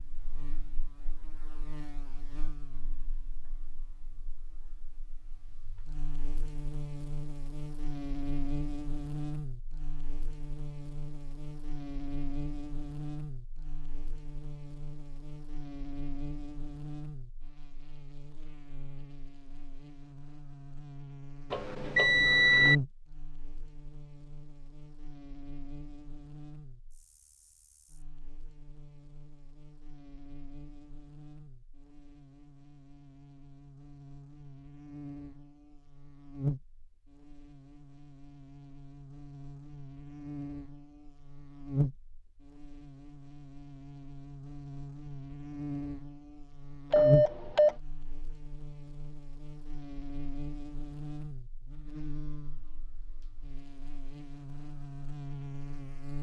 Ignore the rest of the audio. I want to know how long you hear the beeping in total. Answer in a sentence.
You can hear the beeping for 2 seconds altogether.